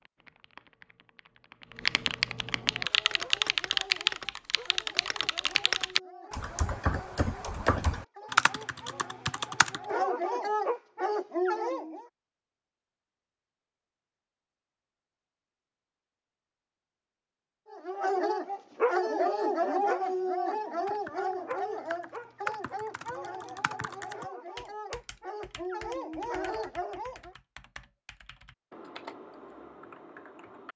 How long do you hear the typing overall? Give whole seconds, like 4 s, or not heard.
20 s.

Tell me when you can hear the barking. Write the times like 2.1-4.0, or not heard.
2.6-12.1, 17.7-27.4.